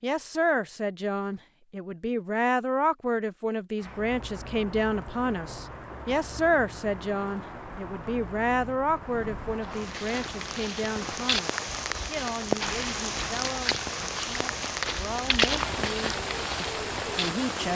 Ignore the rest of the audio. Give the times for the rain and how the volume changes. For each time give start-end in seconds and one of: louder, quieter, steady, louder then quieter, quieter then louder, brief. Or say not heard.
3.8-17.7 louder.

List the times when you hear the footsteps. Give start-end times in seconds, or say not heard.
9.6-17.3.